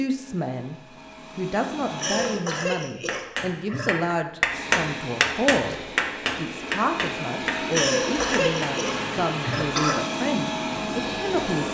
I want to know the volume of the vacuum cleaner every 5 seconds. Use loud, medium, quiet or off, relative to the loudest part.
medium, loud, loud.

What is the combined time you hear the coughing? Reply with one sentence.
The coughing can be heard for 4 seconds in total.